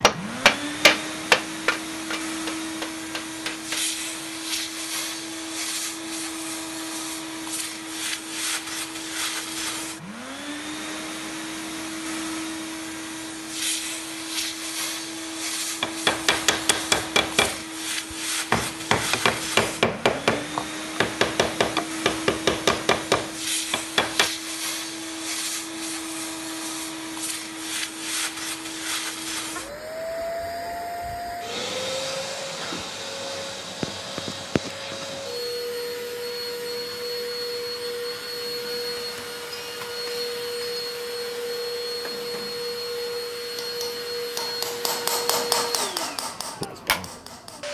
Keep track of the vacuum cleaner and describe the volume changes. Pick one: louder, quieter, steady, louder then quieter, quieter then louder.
steady.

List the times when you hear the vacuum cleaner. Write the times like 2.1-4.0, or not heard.
0.0-47.6.